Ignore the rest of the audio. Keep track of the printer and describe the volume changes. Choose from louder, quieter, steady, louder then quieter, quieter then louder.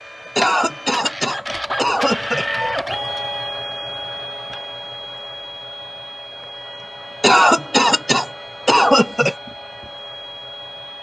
quieter.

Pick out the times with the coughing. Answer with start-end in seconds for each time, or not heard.
0.3-2.5, 7.2-9.3.